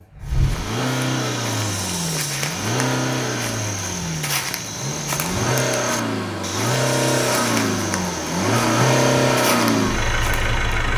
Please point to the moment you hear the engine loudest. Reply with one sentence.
The loudest moment of the engine is at 9 seconds.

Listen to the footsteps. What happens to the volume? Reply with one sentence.
The loudness of the footsteps stays about the same.